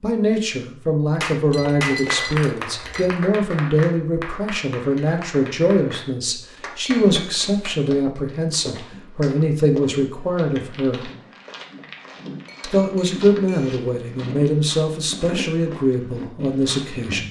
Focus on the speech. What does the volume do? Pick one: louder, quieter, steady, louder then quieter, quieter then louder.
steady.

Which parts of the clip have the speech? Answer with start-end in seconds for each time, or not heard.
0.0-11.1, 12.6-17.2.